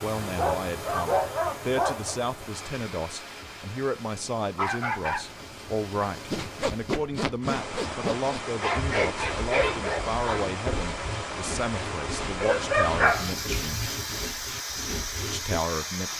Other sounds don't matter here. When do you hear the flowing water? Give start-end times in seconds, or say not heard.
0.0-16.1.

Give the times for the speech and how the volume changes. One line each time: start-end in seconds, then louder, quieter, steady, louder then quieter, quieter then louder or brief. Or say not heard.
0.0-13.8 steady
15.3-16.1 brief.